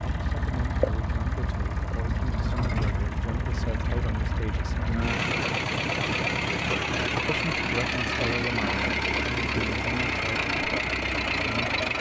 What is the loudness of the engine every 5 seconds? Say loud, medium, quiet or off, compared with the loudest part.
medium, loud, loud.